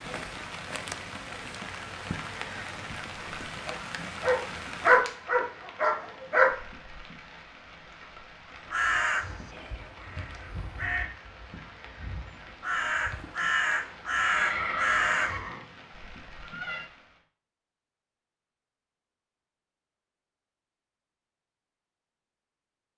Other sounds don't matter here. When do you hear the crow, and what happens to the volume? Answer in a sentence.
The crow can be heard from 8.7 to 15.4 s, getting quieter then louder.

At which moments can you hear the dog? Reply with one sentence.
The dog can be heard from 3.1 to 6.5 s.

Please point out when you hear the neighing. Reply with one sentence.
The neighing can be heard from 14.2 to 16.9 s.